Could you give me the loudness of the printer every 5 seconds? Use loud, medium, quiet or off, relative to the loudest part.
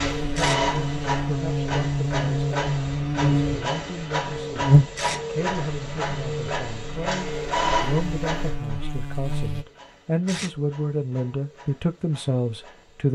loud, loud, quiet.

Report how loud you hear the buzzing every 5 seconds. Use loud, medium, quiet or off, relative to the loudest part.
loud, medium, off.